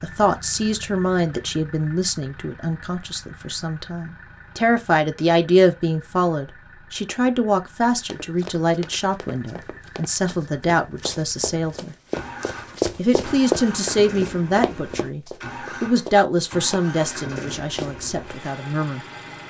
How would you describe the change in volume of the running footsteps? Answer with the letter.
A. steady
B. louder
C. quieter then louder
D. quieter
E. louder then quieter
E.